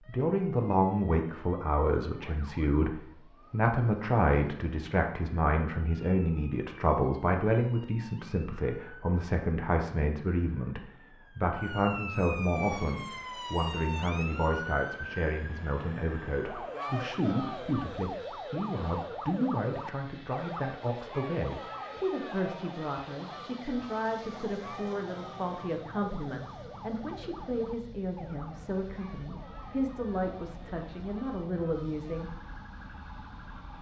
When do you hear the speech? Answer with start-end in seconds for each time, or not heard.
0.1-32.3.